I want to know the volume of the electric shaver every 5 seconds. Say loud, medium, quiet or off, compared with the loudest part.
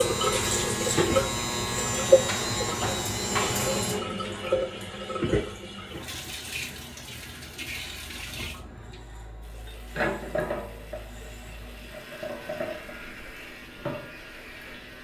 loud, quiet, quiet.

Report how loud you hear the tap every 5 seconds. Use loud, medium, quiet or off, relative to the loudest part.
loud, medium, medium.